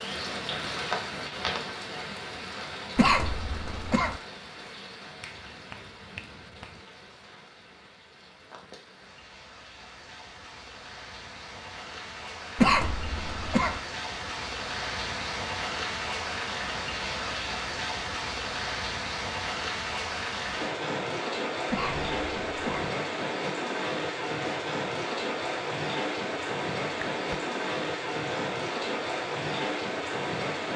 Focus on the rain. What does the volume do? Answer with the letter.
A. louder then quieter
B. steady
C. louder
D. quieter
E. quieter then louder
E.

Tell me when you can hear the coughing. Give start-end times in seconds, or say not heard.
3.0-4.2, 12.6-13.8, 21.7-22.9.